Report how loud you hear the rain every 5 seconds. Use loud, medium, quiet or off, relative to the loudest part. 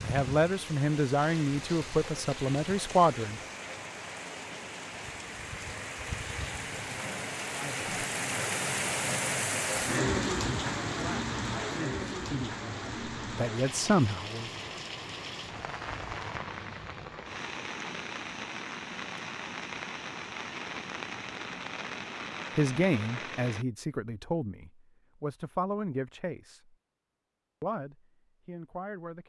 medium, loud, loud, medium, medium, off.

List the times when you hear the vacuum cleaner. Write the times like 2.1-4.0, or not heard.
not heard.